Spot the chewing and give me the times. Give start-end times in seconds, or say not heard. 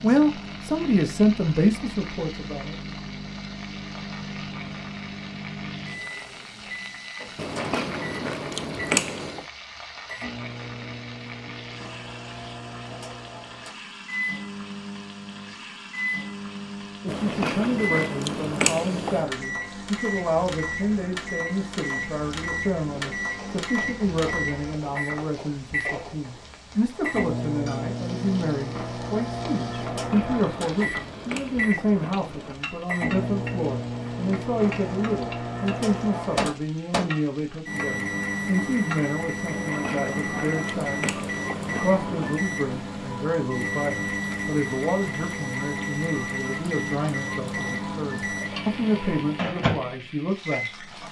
7.3-9.4, 17.1-19.3, 29.9-32.5, 39.5-42.5.